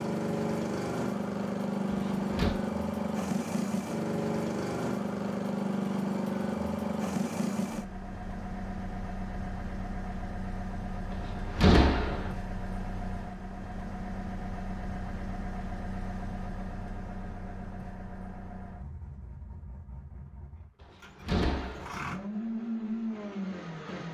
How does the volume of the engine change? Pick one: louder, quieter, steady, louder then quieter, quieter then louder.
quieter.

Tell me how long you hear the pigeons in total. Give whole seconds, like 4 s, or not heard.
not heard.